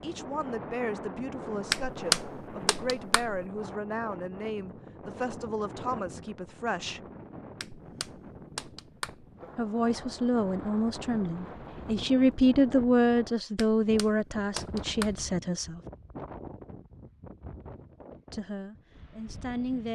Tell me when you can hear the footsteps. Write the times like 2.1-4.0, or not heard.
not heard.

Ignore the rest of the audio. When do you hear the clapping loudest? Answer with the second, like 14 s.
2 s.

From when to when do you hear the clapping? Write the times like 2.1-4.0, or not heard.
1.7-3.4, 7.6-9.3, 13.6-15.2.